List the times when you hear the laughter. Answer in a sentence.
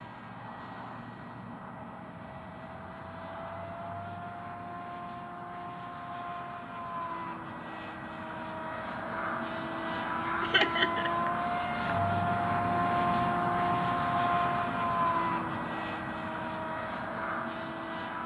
You can hear the laughter from 10.4 to 11.1 s.